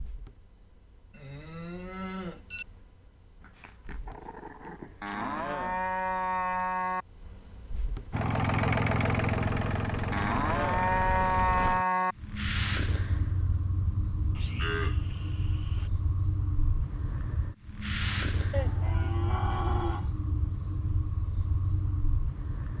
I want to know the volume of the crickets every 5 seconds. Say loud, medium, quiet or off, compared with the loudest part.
quiet, medium, loud, loud, loud.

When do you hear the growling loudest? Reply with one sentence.
The volume of the growling peaks at 5 seconds.